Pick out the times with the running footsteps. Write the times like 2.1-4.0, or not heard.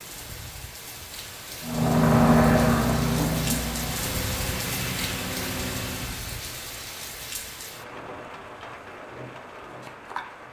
not heard.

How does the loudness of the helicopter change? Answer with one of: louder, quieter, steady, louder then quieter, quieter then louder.
quieter.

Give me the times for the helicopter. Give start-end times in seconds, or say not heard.
1.6-6.2.